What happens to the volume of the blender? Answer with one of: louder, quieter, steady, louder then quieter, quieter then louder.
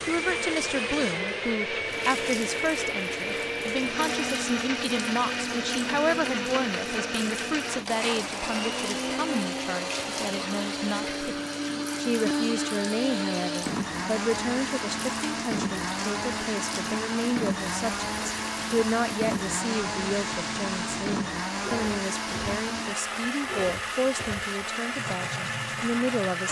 steady.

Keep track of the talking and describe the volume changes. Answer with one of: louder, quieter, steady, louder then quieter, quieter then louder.
steady.